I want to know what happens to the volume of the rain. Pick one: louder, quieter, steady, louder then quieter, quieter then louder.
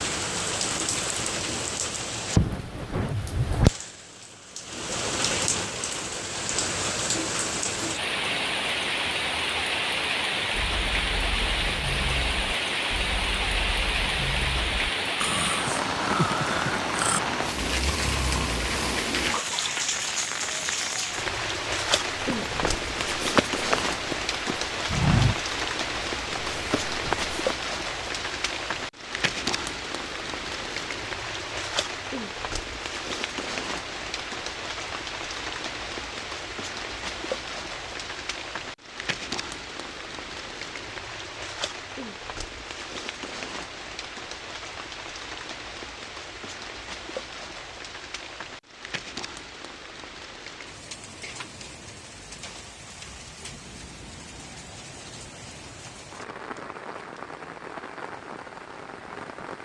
quieter.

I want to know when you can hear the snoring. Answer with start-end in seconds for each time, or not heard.
10.5-19.1.